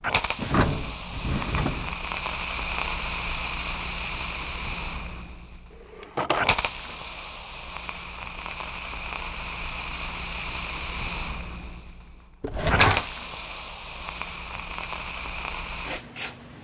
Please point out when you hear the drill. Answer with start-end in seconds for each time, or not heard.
not heard.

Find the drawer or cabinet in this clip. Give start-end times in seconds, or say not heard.
0.3-1.9, 6.0-6.5, 12.4-13.1.